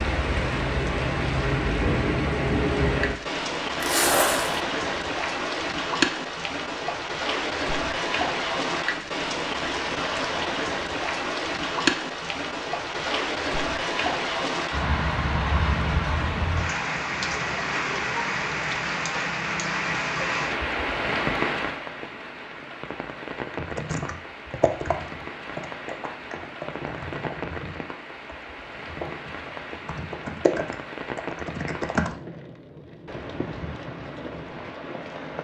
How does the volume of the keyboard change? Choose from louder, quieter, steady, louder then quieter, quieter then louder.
quieter then louder.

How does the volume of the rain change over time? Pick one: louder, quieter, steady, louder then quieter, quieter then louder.
quieter.